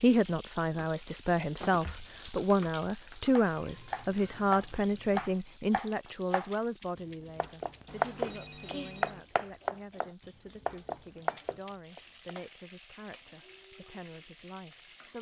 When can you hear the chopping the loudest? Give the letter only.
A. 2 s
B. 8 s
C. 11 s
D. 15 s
B.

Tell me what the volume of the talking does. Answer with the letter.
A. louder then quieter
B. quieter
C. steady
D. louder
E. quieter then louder
B.